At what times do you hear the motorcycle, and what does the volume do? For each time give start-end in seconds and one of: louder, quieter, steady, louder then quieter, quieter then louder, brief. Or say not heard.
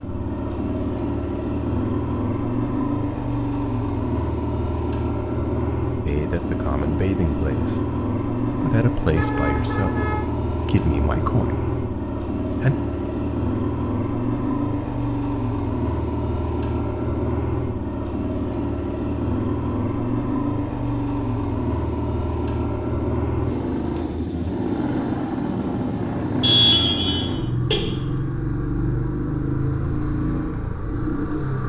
0.0-31.6 steady.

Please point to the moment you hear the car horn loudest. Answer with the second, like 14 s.
27 s.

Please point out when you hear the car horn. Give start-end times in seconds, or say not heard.
9.2-10.2, 26.4-27.8.